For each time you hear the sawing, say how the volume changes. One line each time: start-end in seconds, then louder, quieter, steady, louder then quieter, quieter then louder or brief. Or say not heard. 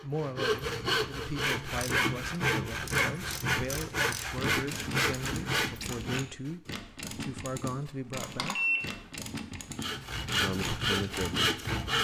0.0-6.5 steady
9.8-11.9 brief.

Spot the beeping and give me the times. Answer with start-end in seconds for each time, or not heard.
8.2-9.1.